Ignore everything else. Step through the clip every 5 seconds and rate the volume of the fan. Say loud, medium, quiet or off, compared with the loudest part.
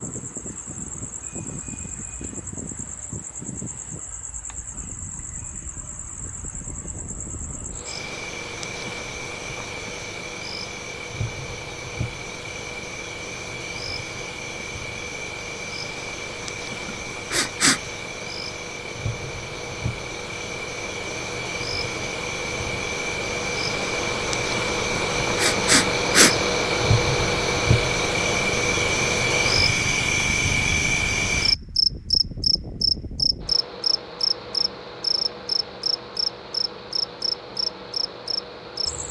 quiet, quiet, quiet, quiet, medium, loud, quiet, quiet.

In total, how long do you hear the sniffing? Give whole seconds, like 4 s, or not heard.
2 s.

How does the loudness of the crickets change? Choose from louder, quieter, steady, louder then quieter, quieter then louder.
louder.